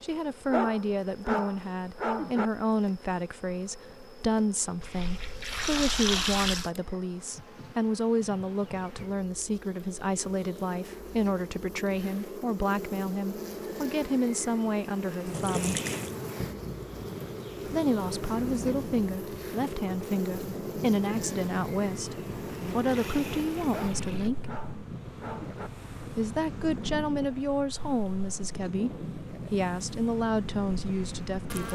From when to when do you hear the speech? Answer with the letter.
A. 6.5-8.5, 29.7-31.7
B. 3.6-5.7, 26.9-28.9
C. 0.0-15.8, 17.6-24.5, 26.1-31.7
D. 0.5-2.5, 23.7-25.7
C.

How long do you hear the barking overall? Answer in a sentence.
The barking can be heard for 4 seconds in total.